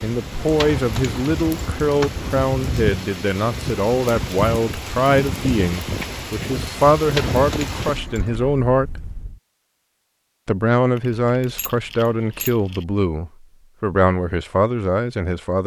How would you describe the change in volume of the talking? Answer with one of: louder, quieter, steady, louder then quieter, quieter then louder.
steady.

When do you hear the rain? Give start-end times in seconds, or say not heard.
0.0-9.4.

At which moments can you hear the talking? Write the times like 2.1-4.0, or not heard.
0.0-9.1, 10.4-15.6.